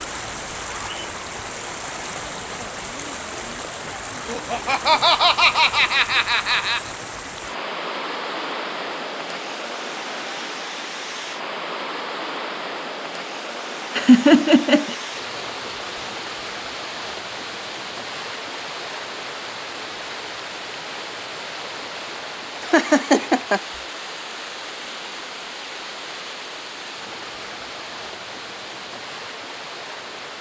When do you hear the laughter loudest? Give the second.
14 s.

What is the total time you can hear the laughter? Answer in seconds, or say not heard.
5 s.